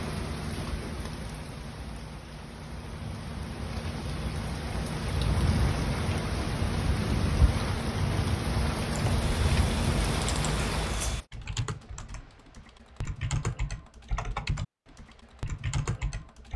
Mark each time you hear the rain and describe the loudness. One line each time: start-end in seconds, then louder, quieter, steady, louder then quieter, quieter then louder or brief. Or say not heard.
0.0-11.2 louder.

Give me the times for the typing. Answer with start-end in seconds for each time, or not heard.
8.9-16.5.